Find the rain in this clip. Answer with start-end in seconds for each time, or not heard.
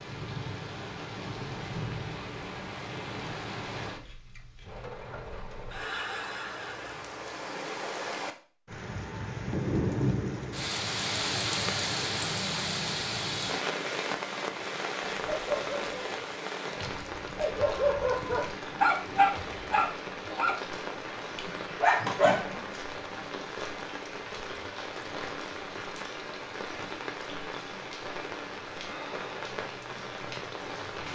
0.0-31.1.